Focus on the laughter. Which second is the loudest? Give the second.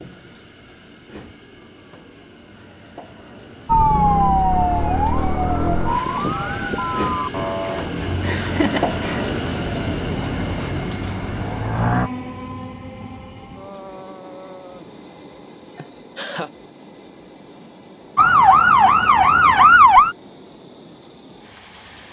9 s.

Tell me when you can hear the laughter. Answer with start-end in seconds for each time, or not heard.
8.2-9.3, 15.8-16.5.